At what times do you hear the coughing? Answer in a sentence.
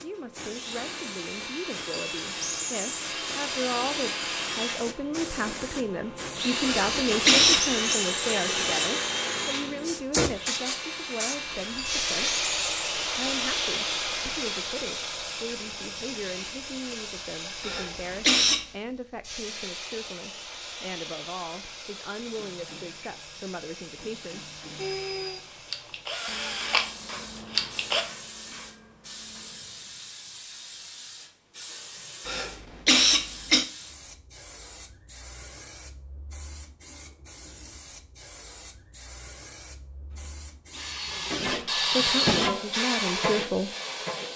You can hear the coughing from 6.7 to 7.8 s, from 17.6 to 18.6 s and from 32.2 to 33.6 s.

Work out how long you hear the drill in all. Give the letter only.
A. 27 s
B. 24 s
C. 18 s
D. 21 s
B.